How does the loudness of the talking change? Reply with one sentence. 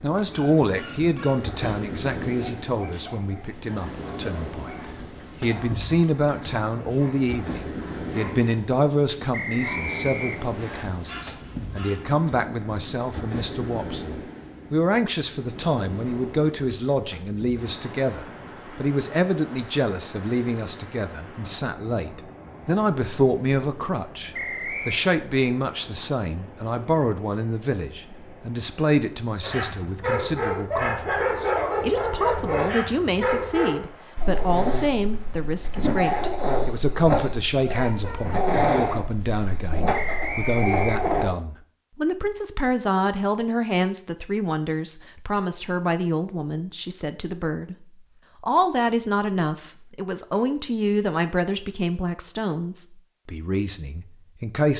The volume of the talking stays about the same.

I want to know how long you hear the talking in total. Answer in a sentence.
You can hear the talking for 55 seconds altogether.